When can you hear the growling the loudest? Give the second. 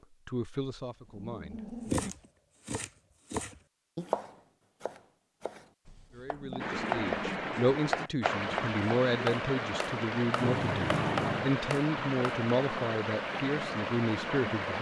11 s.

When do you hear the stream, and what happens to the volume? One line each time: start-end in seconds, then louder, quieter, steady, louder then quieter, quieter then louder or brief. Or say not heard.
6.5-14.7 steady.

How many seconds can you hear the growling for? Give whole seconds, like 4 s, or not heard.
4 s.